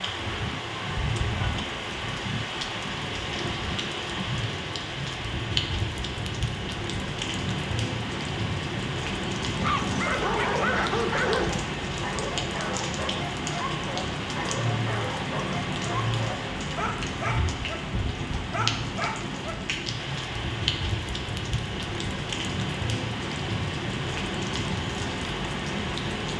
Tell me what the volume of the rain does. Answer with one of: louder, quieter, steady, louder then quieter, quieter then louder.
steady.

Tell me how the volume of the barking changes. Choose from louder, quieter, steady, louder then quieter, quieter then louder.
quieter.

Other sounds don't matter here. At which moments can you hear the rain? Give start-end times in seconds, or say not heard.
0.0-26.3.